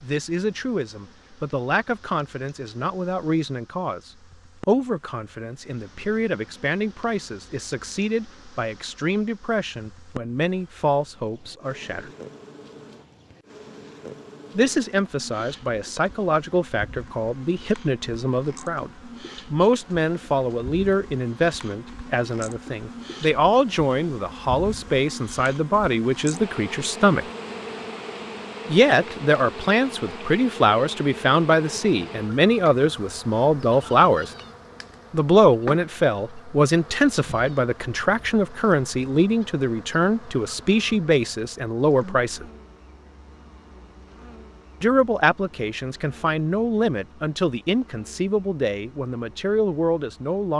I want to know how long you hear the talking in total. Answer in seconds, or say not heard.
43 s.